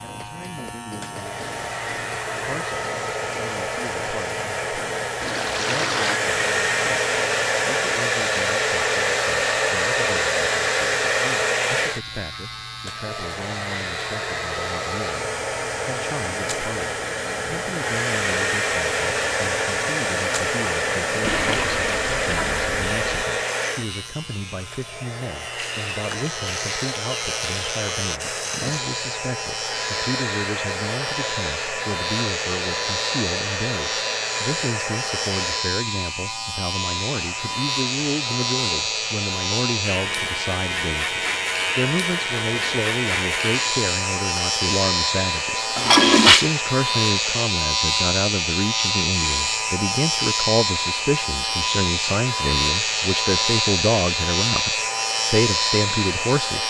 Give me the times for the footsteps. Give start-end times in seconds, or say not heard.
not heard.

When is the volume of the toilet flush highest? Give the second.
46 s.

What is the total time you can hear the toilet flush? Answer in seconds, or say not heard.
4 s.